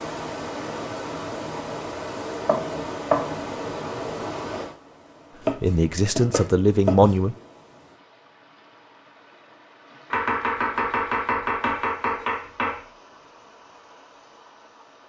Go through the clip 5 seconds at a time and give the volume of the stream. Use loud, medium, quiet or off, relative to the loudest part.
loud, quiet, quiet.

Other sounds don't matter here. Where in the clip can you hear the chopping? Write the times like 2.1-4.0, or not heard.
2.5-3.4, 5.4-7.2, 10.1-12.8.